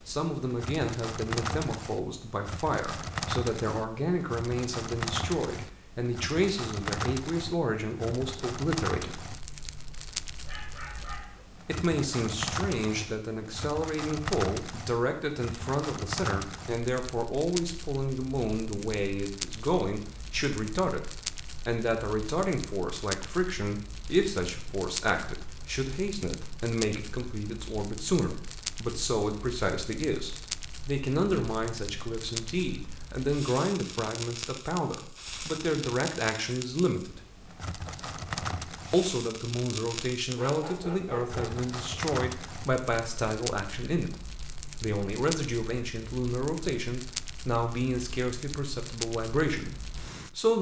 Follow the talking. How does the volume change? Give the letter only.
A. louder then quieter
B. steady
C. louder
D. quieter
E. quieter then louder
B.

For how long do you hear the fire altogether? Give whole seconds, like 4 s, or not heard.
50 s.